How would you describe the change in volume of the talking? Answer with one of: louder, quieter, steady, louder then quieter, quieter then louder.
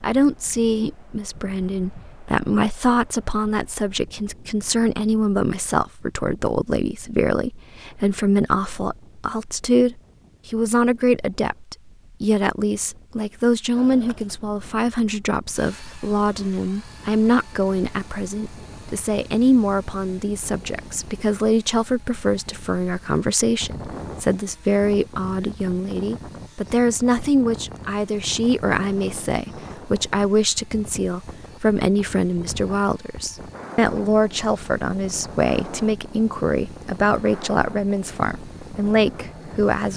steady.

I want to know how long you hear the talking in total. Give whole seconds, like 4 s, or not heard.
40 s.